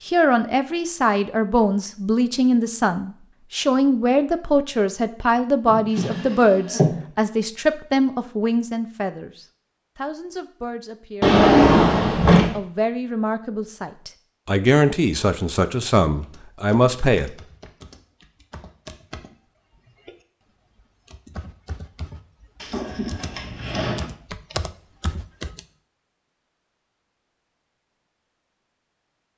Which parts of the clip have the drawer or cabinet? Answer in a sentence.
The drawer or cabinet can be heard from 5.7 to 7.0 s, from 11.2 to 12.6 s and from 22.6 to 24.1 s.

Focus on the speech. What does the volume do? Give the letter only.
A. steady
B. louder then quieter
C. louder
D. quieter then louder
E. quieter
D.